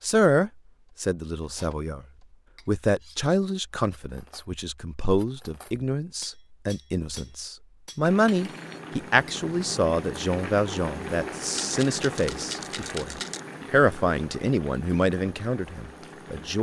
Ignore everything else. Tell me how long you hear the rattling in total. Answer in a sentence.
You can hear the rattling for 2 seconds altogether.